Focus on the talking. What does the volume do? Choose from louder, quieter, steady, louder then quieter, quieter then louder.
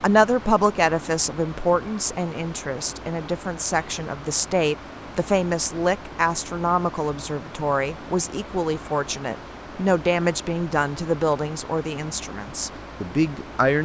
steady.